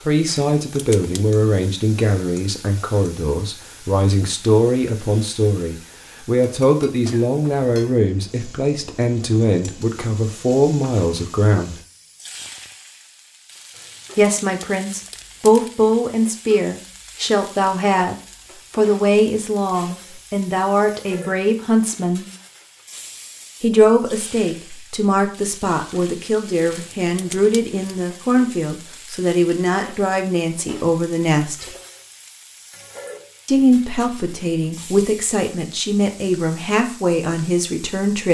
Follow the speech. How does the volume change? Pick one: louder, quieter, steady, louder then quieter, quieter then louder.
steady.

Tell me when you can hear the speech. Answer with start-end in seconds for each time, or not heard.
0.1-11.8, 14.2-22.2, 23.6-31.6, 33.5-38.2.